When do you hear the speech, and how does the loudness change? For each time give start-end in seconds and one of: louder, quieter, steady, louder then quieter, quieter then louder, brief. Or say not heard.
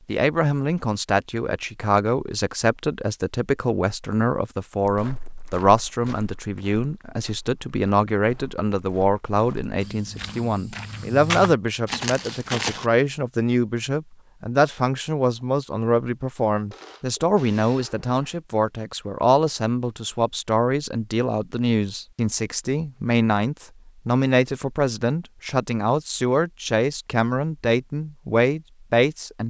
0.1-29.4 steady.